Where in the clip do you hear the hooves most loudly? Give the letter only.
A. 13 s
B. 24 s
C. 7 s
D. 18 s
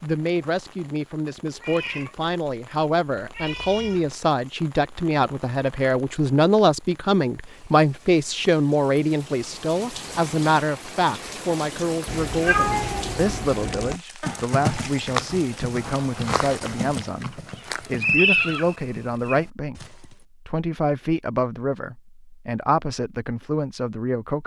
D.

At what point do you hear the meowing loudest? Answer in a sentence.
The loudest moment of the meowing is at 13 seconds.